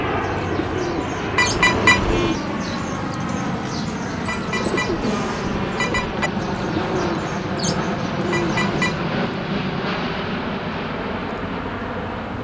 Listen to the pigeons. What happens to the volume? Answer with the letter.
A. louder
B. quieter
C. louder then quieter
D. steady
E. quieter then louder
D.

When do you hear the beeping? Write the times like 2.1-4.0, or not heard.
1.4-2.4, 4.2-6.3, 8.3-9.1.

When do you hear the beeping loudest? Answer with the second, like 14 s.
2 s.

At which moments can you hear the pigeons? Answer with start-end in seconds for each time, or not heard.
0.1-9.0.